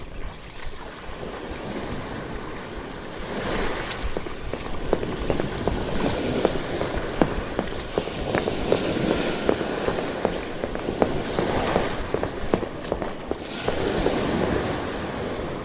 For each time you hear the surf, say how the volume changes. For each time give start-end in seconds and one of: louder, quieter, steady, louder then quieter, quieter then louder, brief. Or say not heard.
0.0-15.6 louder.